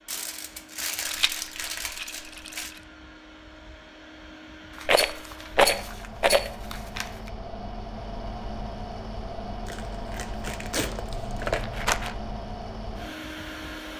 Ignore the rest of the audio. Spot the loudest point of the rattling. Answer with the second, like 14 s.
6 s.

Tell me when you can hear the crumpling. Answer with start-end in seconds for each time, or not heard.
0.1-2.8, 4.7-7.3, 9.7-11.7.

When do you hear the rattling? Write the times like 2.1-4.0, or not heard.
1.1-2.8, 4.8-6.5, 11.1-12.2.